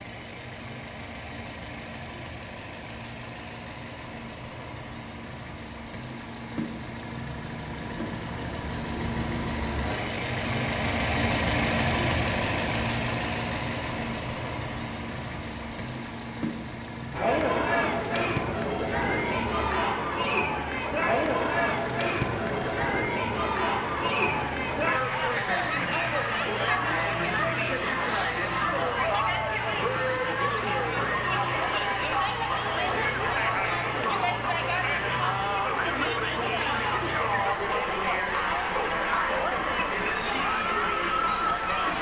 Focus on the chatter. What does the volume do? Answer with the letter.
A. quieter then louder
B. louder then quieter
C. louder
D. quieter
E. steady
E.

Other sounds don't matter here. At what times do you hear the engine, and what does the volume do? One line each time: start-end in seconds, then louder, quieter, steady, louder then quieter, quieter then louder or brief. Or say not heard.
0.0-41.9 louder then quieter.